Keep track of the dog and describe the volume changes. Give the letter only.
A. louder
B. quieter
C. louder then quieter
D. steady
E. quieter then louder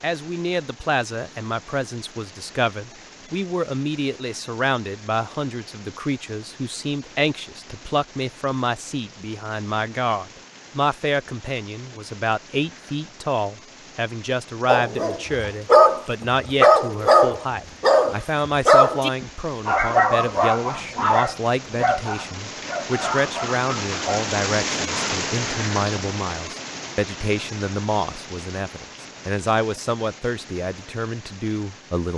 B.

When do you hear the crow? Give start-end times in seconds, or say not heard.
not heard.